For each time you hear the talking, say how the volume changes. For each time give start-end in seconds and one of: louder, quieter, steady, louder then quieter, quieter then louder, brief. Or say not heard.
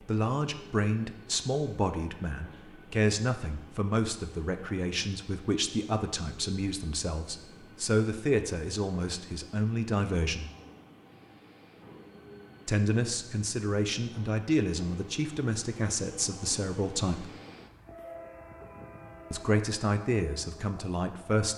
0.1-10.5 steady
12.7-17.2 steady
19.3-21.5 brief.